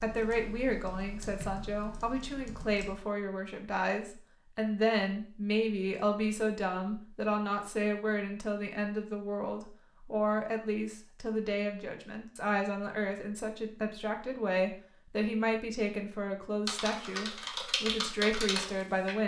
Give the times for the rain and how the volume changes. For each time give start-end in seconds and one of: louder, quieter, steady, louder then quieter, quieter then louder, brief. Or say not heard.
not heard.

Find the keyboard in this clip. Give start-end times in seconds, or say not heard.
0.0-3.0, 16.6-19.1.